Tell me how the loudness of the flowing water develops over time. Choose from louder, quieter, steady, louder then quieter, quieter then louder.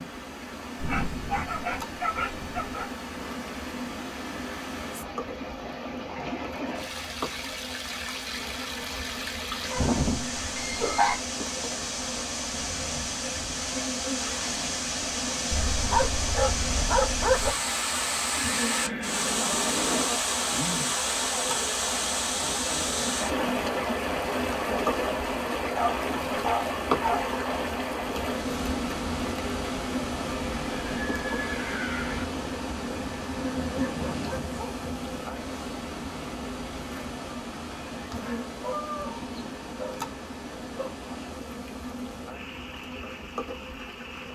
louder then quieter.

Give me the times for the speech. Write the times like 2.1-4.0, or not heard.
not heard.